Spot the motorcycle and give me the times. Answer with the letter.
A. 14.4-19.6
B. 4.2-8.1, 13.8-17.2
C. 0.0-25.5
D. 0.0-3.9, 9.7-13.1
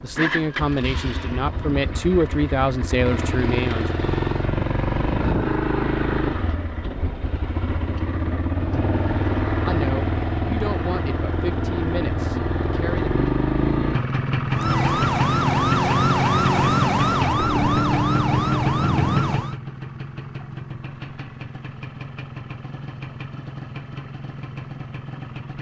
C.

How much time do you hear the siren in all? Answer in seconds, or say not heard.
5 s.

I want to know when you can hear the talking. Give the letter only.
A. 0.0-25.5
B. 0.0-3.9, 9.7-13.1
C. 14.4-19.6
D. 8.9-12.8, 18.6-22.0
B.